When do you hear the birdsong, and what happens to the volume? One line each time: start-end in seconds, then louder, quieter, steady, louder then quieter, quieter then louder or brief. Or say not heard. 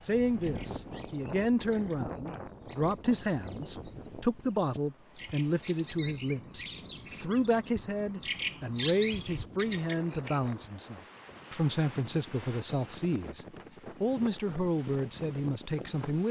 0.2-10.7 louder.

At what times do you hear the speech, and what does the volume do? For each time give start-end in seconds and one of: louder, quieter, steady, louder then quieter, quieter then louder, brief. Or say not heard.
0.0-16.2 steady.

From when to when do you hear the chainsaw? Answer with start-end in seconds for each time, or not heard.
not heard.